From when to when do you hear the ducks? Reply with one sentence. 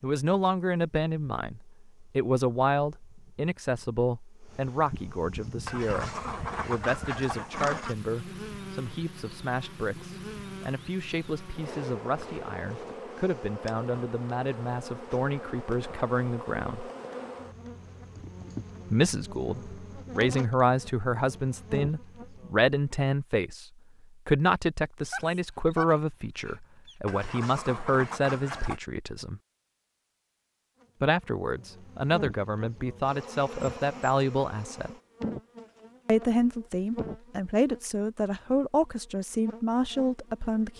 You can hear the ducks from 5.7 to 8.0 s and from 27.1 to 28.8 s.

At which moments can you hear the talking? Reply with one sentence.
The talking can be heard from 0.0 to 16.9 s, from 18.9 to 29.4 s, from 31.0 to 35.0 s and from 36.0 to 40.7 s.